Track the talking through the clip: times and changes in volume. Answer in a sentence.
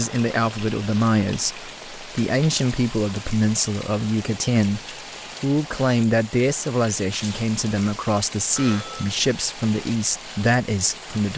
The talking can be heard from 0.0 to 11.3 s, at a steady volume.